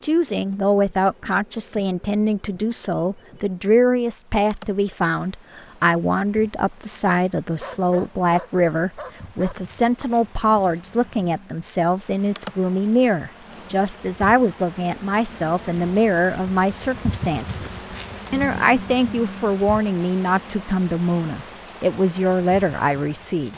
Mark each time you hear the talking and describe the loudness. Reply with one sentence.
The talking can be heard from 0.0 to 23.5 s, at a steady volume.